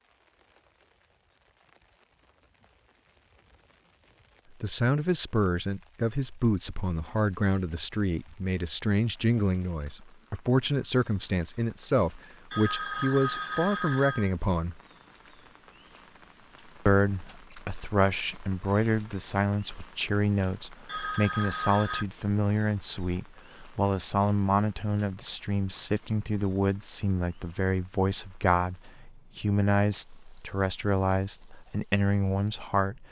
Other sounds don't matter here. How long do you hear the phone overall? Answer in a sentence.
You can hear the phone for 3 seconds altogether.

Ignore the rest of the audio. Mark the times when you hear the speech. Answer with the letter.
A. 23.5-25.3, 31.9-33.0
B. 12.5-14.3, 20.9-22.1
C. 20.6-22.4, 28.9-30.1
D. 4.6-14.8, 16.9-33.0
D.